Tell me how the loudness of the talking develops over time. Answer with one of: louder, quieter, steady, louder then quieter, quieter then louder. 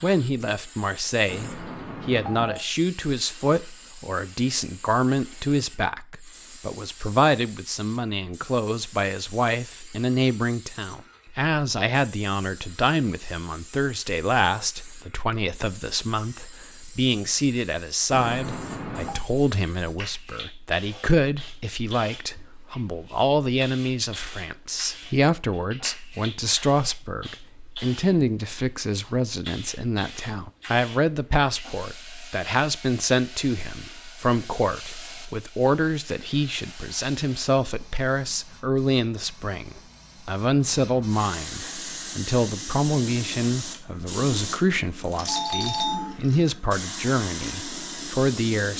steady.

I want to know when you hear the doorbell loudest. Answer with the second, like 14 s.
46 s.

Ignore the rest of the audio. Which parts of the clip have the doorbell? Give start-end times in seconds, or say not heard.
1.2-2.6, 18.1-19.2, 45.2-46.1.